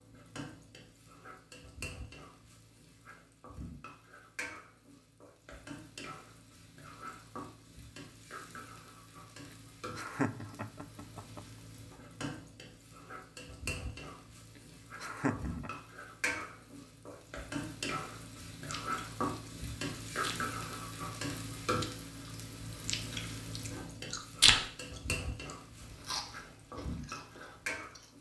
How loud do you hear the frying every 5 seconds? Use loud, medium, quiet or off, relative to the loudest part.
medium, medium, medium, loud, loud, loud.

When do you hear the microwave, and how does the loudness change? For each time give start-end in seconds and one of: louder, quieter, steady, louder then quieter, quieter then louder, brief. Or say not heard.
not heard.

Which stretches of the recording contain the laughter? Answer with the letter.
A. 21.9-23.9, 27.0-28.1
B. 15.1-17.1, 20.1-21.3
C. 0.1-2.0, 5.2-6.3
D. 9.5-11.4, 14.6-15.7
D.